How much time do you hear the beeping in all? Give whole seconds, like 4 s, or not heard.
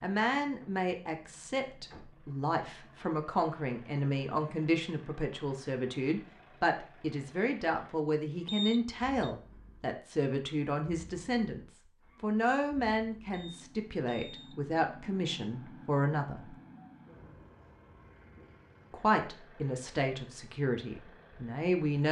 2 s.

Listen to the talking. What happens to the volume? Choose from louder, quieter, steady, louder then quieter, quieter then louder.
steady.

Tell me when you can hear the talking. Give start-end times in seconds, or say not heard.
0.0-16.6, 18.9-22.0.